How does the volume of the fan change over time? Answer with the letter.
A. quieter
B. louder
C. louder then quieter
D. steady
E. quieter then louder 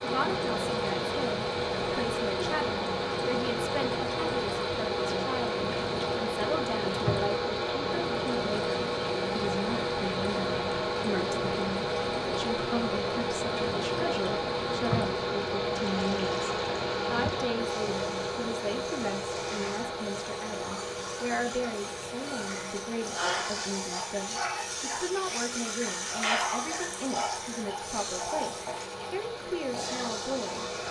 A.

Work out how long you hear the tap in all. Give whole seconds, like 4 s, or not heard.
31 s.